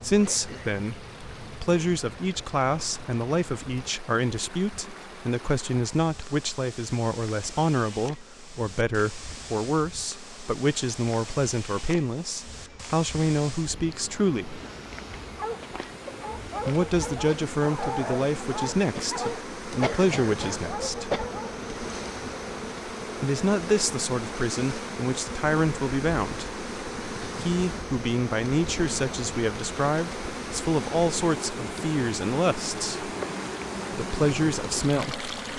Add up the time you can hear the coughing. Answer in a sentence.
The coughing can be heard for 3 seconds in total.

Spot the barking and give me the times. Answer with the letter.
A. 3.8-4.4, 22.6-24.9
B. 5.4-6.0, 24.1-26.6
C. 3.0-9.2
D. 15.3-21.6
D.